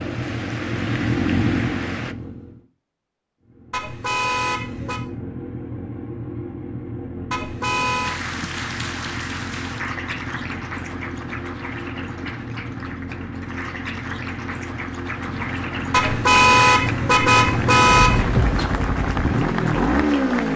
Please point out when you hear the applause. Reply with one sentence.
You can hear the applause from 0.0 to 2.1 s and from 8.0 to 20.5 s.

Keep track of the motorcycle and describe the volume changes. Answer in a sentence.
The loudness of the motorcycle goes down, then up.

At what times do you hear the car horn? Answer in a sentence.
The car horn can be heard from 3.7 to 5.0 s, from 7.3 to 8.2 s and from 15.9 to 18.4 s.